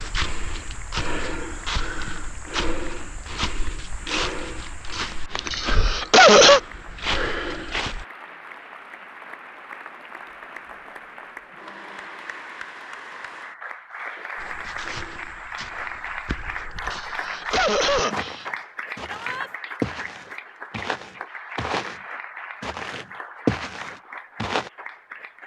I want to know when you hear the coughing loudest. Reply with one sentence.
The loudest moment of the coughing is at 6 seconds.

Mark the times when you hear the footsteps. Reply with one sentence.
You can hear the footsteps from 0.0 to 8.1 s, from 14.3 to 22.0 s and from 22.6 to 24.7 s.